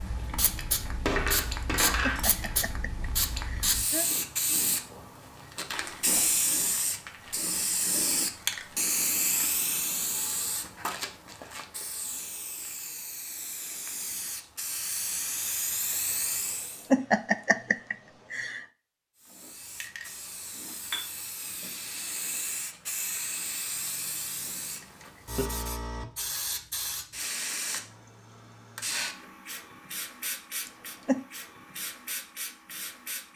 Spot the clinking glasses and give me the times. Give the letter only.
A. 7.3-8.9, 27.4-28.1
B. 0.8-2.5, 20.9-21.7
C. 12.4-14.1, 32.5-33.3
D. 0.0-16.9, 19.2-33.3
B.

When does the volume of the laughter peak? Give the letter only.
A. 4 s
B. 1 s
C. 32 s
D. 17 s
D.